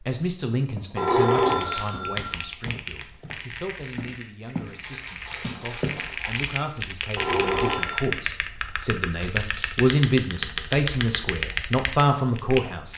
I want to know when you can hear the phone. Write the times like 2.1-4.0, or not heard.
0.9-2.4, 7.2-8.2.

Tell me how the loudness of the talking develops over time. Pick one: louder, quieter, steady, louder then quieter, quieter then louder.
quieter then louder.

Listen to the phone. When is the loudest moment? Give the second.
1 s.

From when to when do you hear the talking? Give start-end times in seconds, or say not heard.
0.0-12.9.